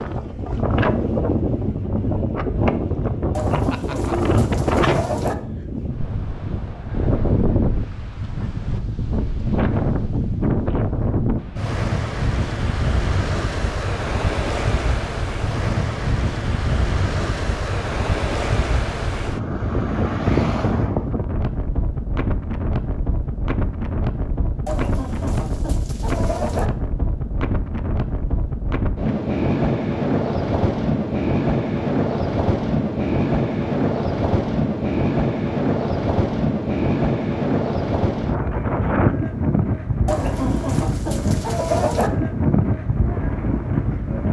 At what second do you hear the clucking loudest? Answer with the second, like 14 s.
42 s.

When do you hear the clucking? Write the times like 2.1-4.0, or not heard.
3.4-5.3, 24.6-26.6, 40.0-42.1.